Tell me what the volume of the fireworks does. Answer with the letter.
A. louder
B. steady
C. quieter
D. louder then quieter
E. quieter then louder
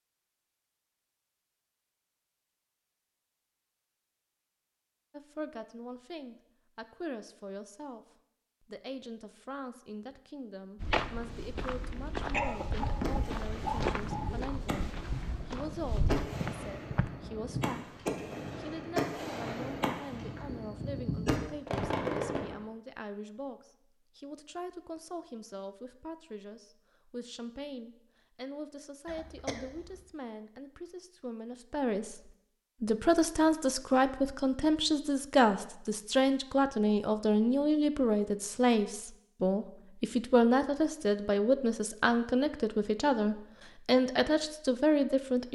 A.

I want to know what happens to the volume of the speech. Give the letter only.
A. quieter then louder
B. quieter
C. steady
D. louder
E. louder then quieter
D.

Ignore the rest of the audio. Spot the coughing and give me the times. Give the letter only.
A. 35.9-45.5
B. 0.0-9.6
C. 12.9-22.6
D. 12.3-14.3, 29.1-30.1
D.